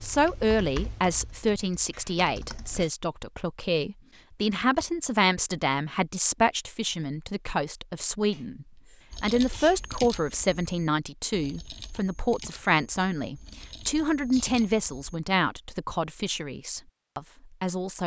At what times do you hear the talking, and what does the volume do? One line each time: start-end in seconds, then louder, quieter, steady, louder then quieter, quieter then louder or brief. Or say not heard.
0.0-18.0 steady.